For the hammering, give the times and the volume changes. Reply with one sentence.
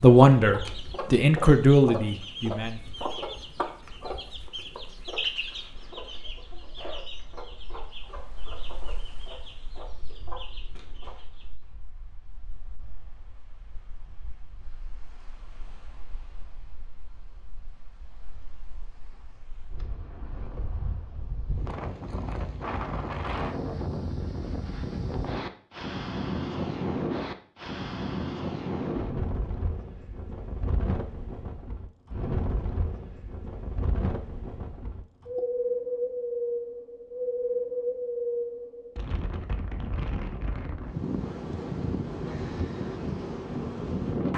You can't hear the hammering here.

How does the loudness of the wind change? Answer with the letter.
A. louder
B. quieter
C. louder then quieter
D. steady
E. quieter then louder
A.